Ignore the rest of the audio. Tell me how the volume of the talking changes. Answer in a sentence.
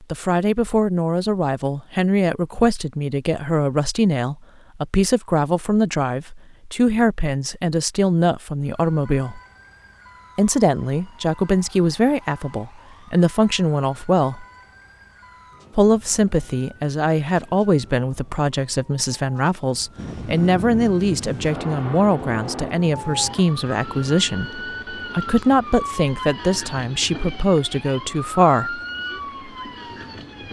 The loudness of the talking stays about the same.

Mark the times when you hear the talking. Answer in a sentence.
The talking can be heard from 0.1 to 9.4 s, from 10.3 to 14.4 s and from 15.8 to 28.8 s.